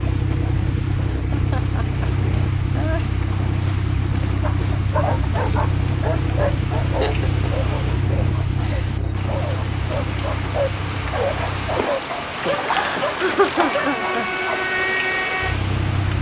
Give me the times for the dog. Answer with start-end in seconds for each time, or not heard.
4.4-14.6.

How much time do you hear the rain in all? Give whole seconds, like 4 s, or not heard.
16 s.